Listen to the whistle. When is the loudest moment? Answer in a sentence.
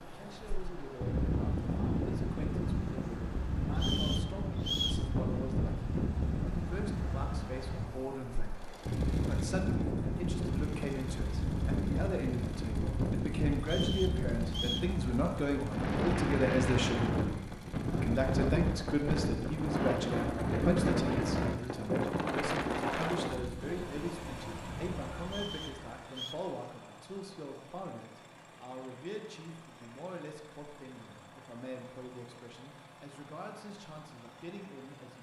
The volume of the whistle peaks at 5 seconds.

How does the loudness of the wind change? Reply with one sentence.
The loudness of the wind stays about the same.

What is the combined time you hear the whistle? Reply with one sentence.
You can hear the whistle for 4 seconds altogether.